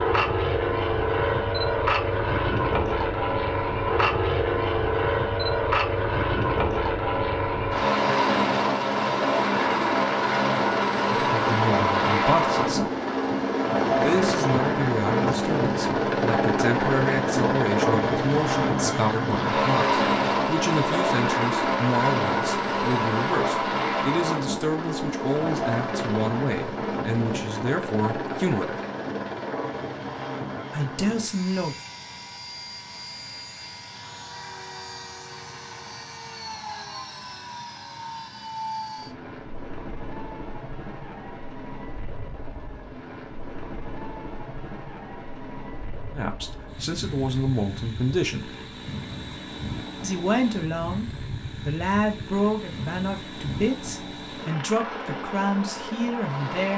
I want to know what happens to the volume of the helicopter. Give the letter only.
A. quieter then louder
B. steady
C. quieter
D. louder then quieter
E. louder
C.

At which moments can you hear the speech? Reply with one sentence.
You can hear the speech from 11.3 to 12.9 s, from 13.9 to 28.8 s, from 30.7 to 31.8 s, from 46.1 to 48.5 s and from 50.0 to 56.7 s.